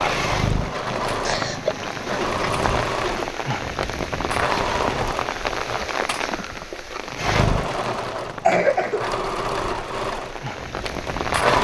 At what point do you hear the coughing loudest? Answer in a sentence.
The volume of the coughing peaks at 9 seconds.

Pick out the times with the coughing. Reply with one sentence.
The coughing can be heard from 1.2 to 1.8 s and from 8.2 to 9.1 s.